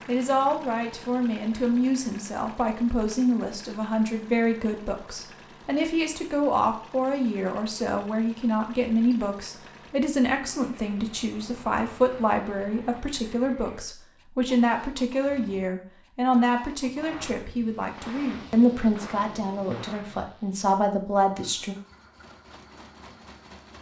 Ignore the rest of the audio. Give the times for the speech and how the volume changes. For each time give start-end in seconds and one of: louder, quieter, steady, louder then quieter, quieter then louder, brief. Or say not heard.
0.1-21.8 steady.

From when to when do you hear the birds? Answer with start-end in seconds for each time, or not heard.
not heard.